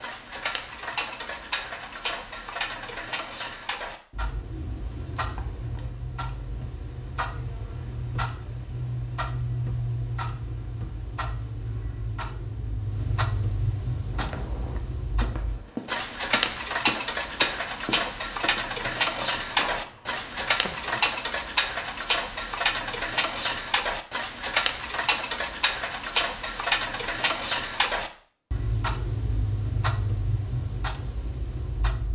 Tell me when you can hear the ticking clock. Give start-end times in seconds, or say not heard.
0.0-32.0.